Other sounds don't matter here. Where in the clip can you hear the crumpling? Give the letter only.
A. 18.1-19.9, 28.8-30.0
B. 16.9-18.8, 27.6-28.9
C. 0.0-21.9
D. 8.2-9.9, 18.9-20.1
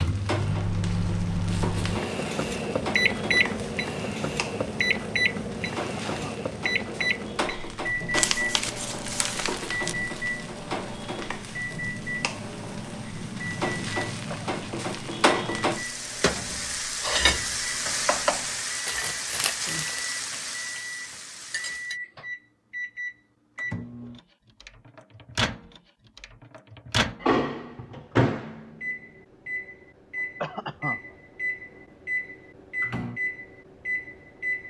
D.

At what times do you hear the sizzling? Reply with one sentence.
The sizzling can be heard from 0.0 to 21.9 s.